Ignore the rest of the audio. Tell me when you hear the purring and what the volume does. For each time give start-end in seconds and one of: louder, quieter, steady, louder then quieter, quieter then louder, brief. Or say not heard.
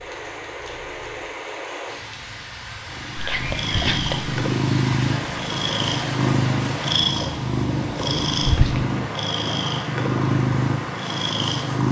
0.0-11.8 louder.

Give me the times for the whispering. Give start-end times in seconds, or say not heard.
3.1-4.3, 8.4-8.8.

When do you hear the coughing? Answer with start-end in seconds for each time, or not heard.
not heard.